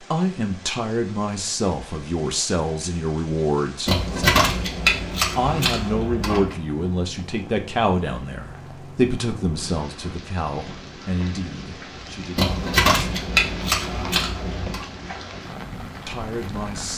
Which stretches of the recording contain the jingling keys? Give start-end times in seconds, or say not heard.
3.9-6.5, 12.3-14.8.